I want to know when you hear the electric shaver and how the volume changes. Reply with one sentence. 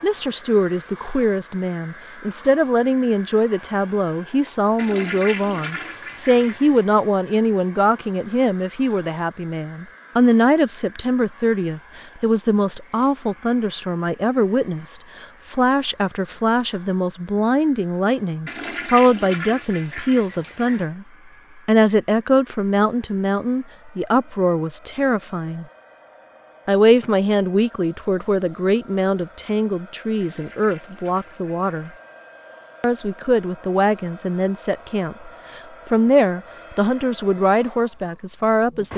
The electric shaver can't be heard in this clip.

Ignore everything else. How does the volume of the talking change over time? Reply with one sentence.
The loudness of the talking stays about the same.